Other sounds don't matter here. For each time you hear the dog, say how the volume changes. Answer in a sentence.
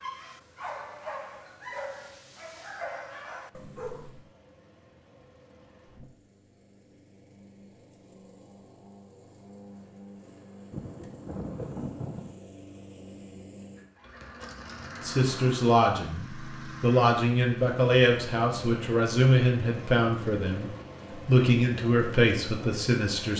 You can hear the dog from 0.0 to 4.3 s, at a steady volume.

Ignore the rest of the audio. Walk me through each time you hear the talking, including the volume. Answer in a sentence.
The talking can be heard from 15.0 to 23.3 s, at a steady volume.